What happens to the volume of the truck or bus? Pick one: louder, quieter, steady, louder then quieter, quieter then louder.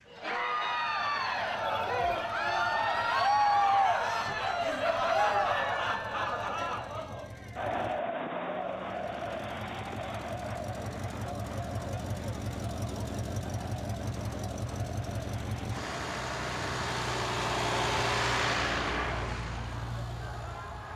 louder.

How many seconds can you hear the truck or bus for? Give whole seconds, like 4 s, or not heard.
21 s.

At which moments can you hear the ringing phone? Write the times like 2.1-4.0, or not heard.
1.6-2.2.